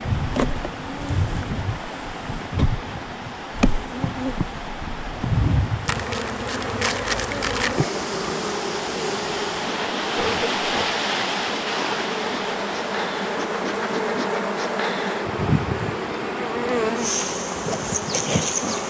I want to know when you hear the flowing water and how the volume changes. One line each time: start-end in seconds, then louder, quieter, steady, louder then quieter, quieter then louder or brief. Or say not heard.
0.0-18.8 louder then quieter.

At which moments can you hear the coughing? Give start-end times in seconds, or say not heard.
10.2-10.9.